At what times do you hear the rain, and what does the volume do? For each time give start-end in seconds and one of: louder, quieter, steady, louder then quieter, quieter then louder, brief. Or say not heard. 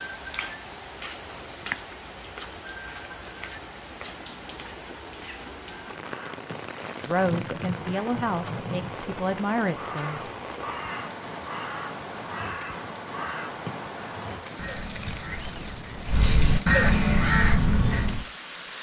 0.0-18.7 steady.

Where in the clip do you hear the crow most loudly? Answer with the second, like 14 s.
17 s.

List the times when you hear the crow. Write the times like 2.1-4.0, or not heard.
6.0-18.2.